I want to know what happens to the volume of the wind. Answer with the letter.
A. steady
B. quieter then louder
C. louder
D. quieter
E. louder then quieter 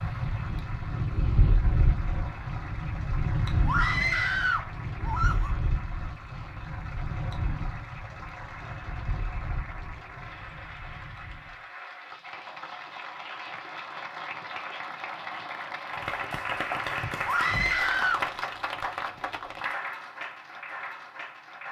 D.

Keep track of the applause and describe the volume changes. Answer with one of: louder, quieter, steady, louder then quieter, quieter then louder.
louder.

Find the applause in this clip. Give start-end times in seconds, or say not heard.
0.0-21.6.